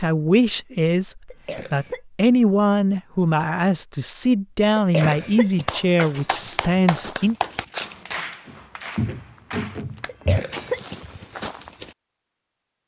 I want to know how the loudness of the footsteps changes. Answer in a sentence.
The volume of the footsteps goes up, then down.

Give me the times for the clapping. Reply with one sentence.
The clapping can be heard from 5.0 to 10.1 s.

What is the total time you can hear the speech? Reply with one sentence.
You can hear the speech for 7 seconds altogether.